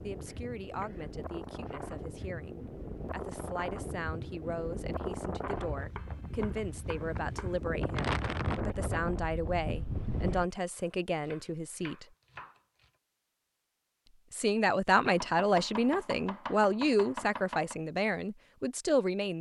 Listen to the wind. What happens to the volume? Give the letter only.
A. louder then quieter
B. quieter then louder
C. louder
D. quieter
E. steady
C.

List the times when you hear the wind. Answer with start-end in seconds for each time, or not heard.
0.0-10.4.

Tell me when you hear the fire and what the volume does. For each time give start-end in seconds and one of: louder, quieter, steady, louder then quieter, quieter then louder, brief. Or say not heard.
not heard.